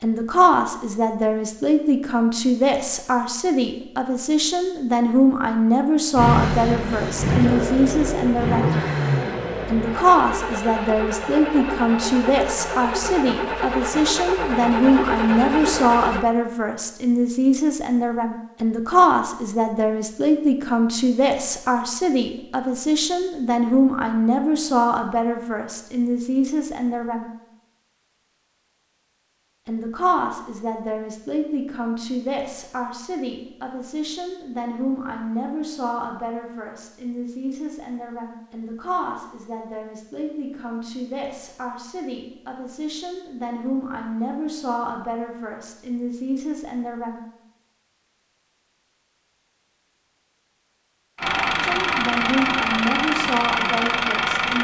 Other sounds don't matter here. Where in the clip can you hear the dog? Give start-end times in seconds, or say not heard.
not heard.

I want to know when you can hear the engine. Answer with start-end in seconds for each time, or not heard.
6.2-16.2, 51.1-54.5.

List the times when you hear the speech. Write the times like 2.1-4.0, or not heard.
0.0-8.7, 9.7-27.3, 29.6-47.2, 51.6-54.5.